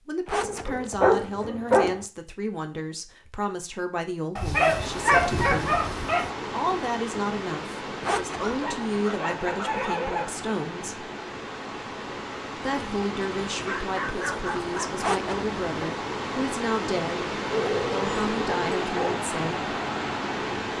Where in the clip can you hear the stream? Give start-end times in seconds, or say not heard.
4.5-20.7.